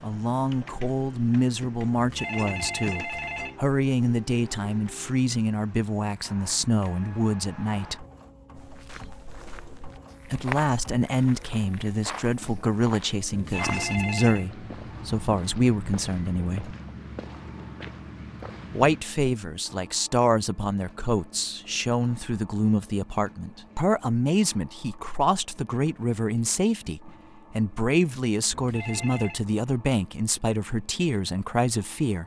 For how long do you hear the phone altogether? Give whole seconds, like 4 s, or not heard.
4 s.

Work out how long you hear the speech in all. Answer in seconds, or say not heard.
28 s.